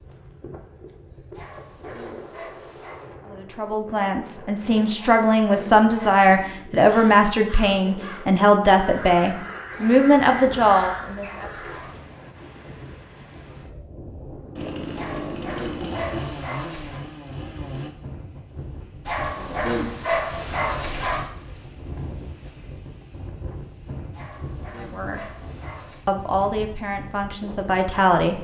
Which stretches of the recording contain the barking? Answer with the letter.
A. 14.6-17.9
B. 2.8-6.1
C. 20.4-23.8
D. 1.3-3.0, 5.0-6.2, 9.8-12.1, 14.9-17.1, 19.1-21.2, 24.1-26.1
D.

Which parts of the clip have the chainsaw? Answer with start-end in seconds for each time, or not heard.
14.6-17.9.